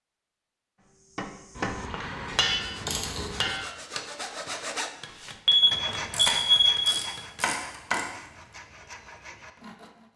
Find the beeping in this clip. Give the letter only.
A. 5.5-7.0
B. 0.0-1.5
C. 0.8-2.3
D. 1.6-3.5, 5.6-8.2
A.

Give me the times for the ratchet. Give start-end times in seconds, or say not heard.
1.6-3.5, 5.6-8.2.